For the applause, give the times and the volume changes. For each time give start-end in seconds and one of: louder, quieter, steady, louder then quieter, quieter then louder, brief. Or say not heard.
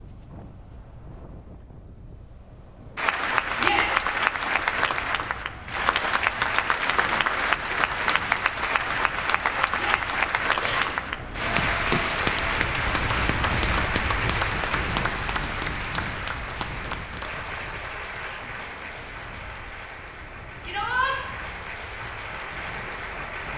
3.0-23.5 quieter.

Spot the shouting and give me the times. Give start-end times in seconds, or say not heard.
3.5-4.0, 9.7-11.0, 20.6-21.1.